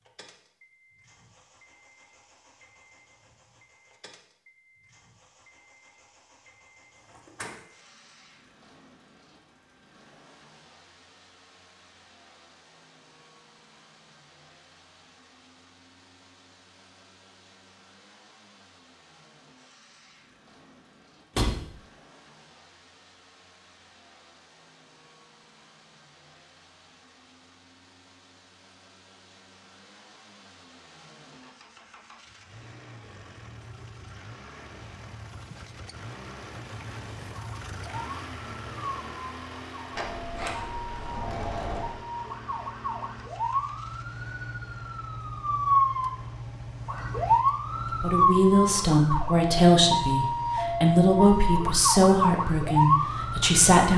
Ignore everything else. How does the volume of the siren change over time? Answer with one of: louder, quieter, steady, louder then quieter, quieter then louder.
louder.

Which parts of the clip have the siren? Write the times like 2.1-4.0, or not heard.
37.3-53.9.